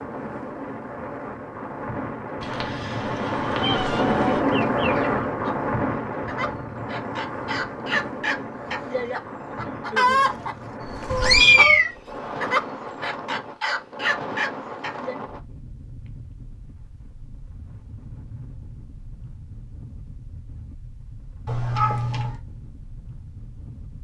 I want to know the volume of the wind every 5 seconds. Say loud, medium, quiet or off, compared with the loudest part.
loud, loud, medium, quiet, quiet.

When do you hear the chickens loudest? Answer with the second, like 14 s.
10 s.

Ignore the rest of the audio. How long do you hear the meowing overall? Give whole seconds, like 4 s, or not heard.
4 s.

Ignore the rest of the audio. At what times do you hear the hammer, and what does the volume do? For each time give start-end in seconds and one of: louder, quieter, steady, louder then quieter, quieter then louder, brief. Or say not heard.
not heard.